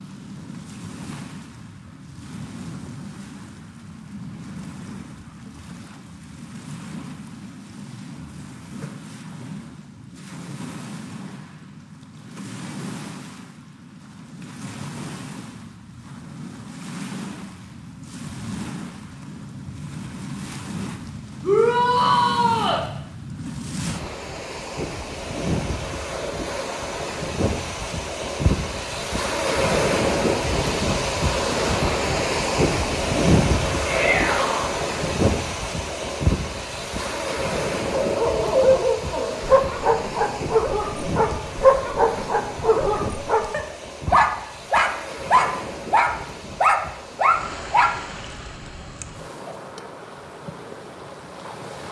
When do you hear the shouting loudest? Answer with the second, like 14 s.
22 s.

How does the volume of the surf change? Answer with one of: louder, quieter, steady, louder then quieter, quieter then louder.
louder then quieter.